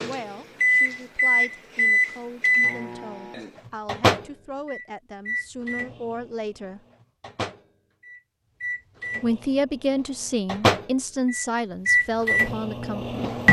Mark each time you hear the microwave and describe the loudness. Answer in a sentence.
The microwave can be heard from 0.0 to 13.4 s, getting quieter then louder.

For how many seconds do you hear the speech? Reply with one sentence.
You can hear the speech for 11 seconds altogether.